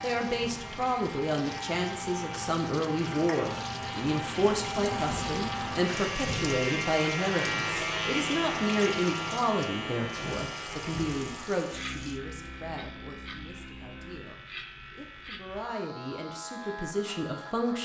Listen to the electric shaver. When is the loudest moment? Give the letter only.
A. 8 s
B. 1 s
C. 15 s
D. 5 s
A.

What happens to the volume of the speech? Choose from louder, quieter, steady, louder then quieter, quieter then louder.
quieter.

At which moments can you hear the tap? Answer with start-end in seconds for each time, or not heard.
0.0-12.2.